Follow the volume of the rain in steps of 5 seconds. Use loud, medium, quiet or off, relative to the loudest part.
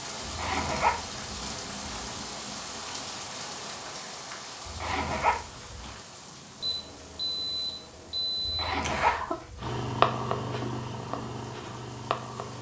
loud, medium, quiet.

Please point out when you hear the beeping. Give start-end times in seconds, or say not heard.
6.6-9.3.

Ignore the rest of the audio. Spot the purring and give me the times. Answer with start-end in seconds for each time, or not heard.
0.0-2.7, 9.6-12.5.